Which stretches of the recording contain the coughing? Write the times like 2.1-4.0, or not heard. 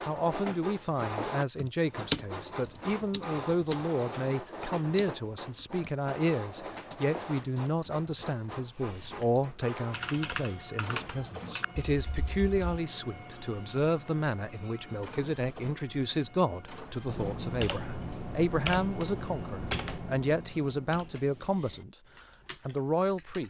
not heard.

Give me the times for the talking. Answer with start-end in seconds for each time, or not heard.
0.1-21.9, 22.6-23.4.